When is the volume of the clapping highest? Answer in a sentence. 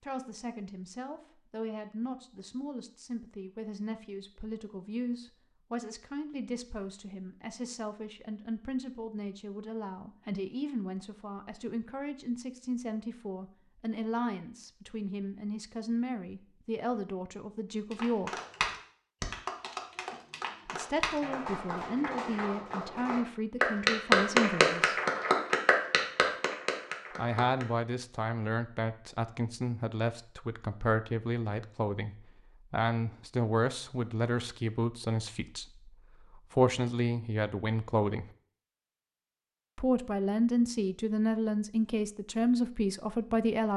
The volume of the clapping peaks at 24 seconds.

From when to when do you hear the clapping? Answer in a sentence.
The clapping can be heard from 17.9 to 27.6 s.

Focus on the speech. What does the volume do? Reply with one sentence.
The loudness of the speech goes up.